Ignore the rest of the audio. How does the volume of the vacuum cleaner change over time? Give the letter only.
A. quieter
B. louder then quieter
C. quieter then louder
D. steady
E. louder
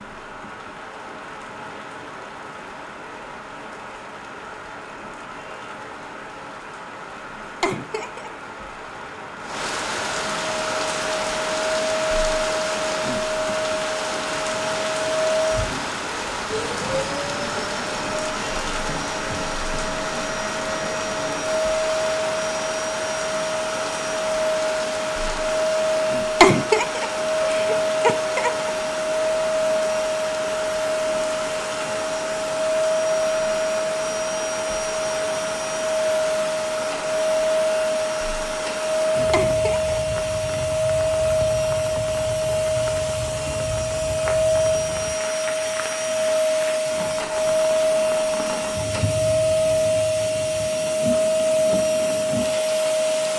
E.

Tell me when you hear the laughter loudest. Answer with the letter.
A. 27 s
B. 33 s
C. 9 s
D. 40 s
A.